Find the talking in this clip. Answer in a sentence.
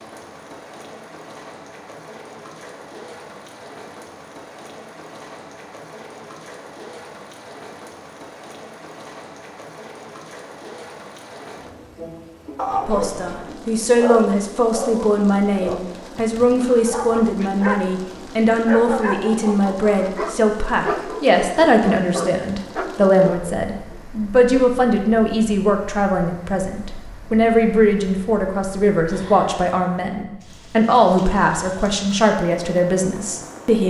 You can hear the talking from 12.8 to 33.8 s.